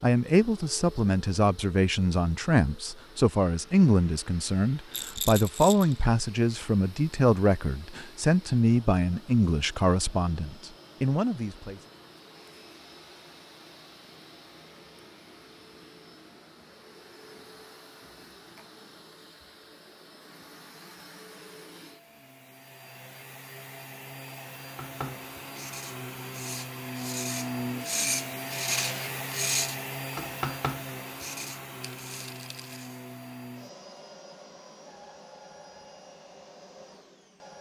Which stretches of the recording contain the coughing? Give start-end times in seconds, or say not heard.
not heard.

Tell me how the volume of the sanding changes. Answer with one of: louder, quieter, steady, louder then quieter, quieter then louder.
louder then quieter.